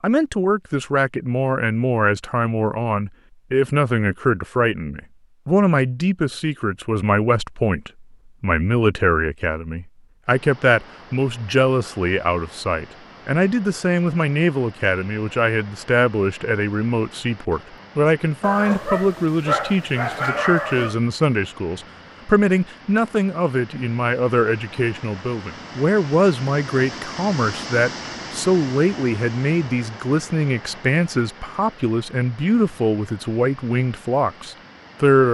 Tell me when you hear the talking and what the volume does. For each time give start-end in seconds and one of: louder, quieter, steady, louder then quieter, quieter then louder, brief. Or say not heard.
0.0-35.2 steady.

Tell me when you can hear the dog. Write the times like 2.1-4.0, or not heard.
18.4-20.9.